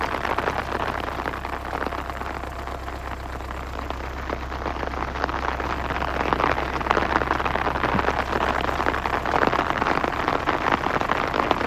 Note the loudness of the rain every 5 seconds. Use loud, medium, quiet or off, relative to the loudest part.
medium, loud, loud.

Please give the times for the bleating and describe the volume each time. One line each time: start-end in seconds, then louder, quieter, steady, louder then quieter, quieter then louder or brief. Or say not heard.
not heard.